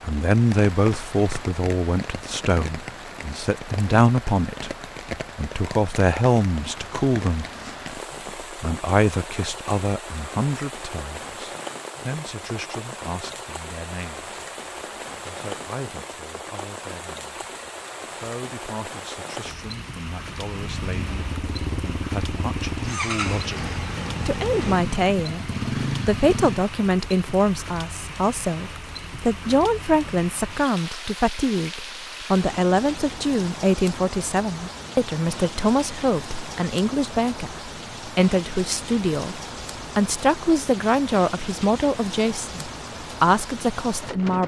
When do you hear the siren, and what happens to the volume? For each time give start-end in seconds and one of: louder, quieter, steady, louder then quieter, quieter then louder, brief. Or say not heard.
not heard.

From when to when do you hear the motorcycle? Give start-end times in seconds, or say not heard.
20.5-26.7.